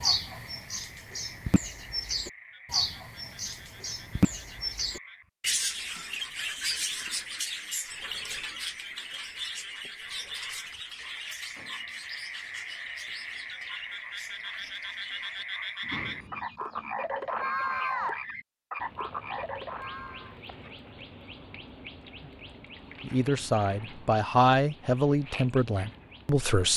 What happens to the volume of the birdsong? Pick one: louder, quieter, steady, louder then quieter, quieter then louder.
quieter.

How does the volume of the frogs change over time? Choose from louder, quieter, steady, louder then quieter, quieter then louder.
louder.